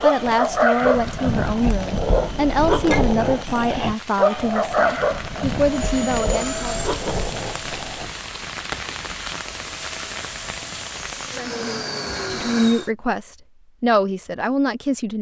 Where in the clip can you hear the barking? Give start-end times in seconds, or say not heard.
0.0-8.1.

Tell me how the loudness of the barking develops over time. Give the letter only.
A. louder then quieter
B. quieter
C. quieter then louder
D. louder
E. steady
B.